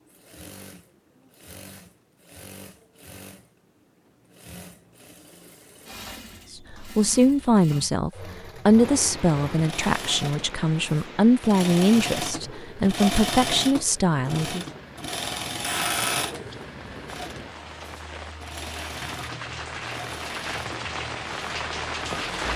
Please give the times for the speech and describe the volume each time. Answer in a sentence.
You can hear the speech from 6.7 to 14.7 s, at a steady volume.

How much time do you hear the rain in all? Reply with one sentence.
The rain can be heard for 14 seconds in total.